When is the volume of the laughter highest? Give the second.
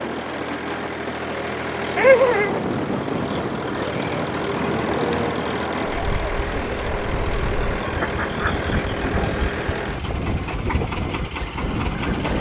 2 s.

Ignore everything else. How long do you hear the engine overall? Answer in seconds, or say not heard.
12 s.